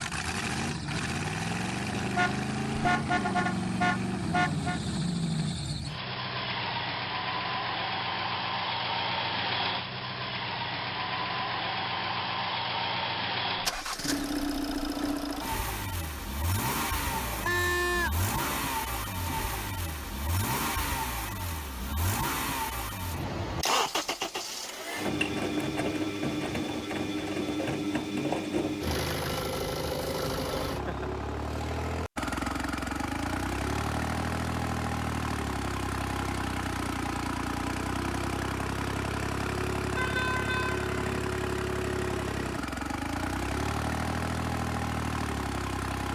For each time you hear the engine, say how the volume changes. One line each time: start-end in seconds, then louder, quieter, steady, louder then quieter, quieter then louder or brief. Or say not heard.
0.0-46.1 steady.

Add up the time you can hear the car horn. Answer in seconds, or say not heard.
5 s.